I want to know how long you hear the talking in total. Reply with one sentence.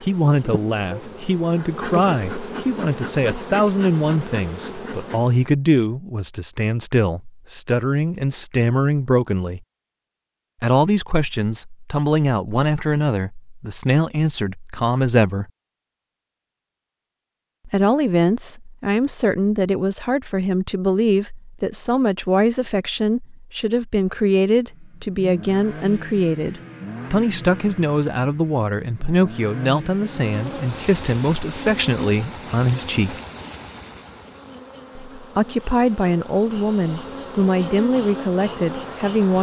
The talking can be heard for 34 seconds in total.